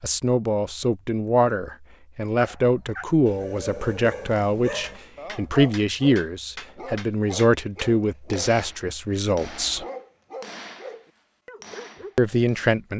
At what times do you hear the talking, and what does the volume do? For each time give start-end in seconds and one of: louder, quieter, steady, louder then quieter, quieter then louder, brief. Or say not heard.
0.0-9.8 steady
12.2-12.9 brief.